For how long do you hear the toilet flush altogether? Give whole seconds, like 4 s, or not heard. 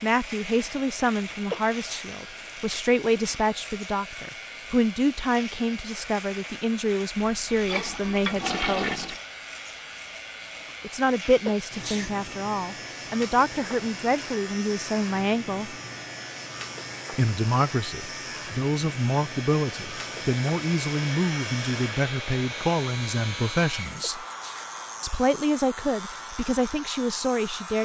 2 s.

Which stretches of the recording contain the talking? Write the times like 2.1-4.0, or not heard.
0.0-9.2, 10.8-15.8, 17.1-24.2, 25.0-27.8.